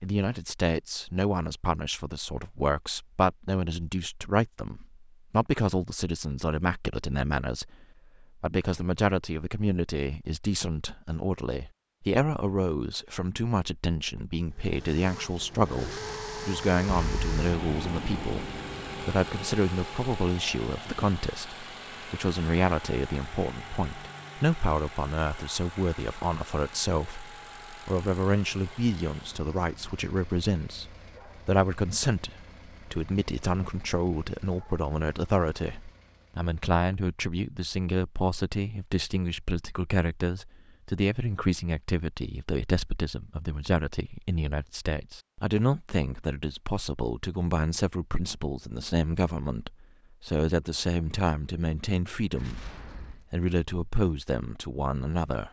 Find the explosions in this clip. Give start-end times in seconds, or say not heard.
16.9-19.5, 52.4-53.2.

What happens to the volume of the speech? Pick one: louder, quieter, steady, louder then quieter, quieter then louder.
steady.